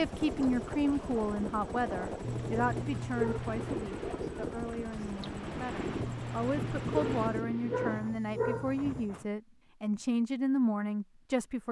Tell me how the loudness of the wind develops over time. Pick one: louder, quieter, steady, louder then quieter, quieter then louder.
steady.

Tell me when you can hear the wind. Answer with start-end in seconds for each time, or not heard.
0.0-9.2.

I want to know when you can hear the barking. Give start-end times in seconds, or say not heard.
2.2-3.9, 6.0-8.8.